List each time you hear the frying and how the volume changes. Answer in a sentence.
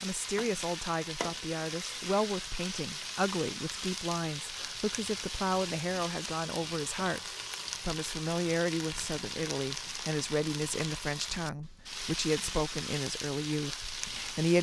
You can hear the frying from 0.0 to 14.5 s, at a steady volume.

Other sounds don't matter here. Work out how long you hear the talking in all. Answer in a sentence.
You can hear the talking for 14 seconds altogether.